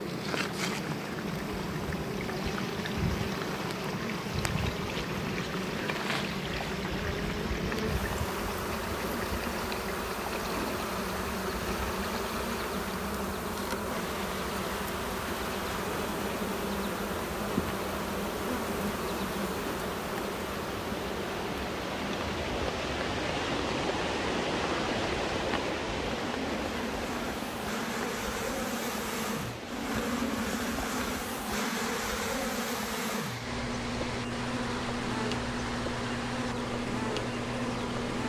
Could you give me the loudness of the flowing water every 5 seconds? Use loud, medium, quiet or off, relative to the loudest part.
medium, medium, medium, medium, loud, loud, medium, medium.